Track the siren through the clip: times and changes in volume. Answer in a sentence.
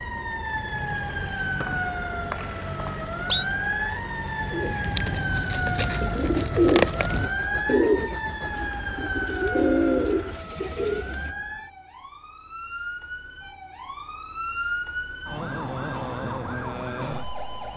You can hear the siren from 0.0 to 17.7 s, getting quieter then louder.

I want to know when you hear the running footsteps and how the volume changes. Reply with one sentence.
The running footsteps can't be heard in this clip.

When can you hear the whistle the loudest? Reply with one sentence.
The loudest moment of the whistle is at 3 seconds.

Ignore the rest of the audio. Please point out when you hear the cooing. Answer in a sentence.
You can hear the cooing from 4.3 to 11.2 s.